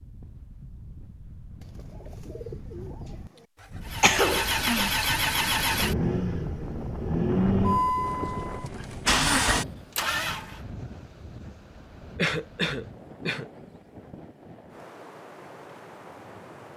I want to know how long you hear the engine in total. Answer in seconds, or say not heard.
7 s.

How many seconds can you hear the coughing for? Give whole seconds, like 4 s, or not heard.
2 s.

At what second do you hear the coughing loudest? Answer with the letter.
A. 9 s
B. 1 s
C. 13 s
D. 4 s
D.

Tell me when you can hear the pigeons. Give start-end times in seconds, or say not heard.
1.6-4.0.